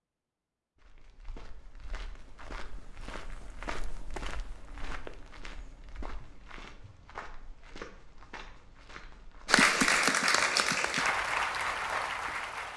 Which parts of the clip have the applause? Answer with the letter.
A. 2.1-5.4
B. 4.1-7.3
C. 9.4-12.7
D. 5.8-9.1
C.